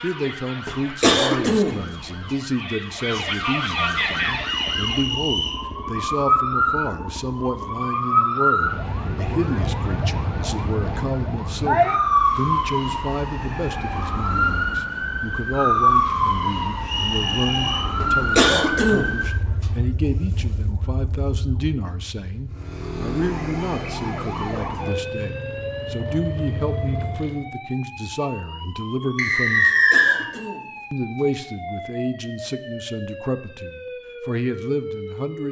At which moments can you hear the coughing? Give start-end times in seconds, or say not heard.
0.7-2.2, 18.0-19.7, 29.6-31.2.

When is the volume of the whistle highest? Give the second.
30 s.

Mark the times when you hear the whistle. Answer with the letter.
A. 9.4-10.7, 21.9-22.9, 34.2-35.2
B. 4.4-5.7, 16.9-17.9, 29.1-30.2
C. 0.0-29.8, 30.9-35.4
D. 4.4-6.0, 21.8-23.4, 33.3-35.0
B.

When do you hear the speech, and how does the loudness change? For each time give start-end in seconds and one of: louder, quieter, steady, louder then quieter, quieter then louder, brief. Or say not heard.
0.0-29.8 steady
30.9-35.4 quieter then louder.